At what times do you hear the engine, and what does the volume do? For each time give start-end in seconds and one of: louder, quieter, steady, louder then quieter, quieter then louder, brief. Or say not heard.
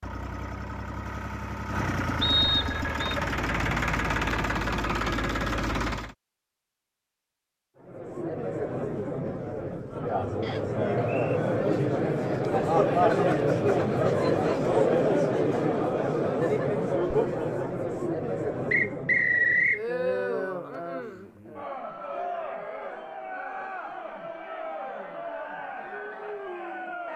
0.0-6.2 louder.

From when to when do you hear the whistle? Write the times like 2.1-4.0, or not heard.
2.2-3.1, 10.4-11.4, 18.7-19.8.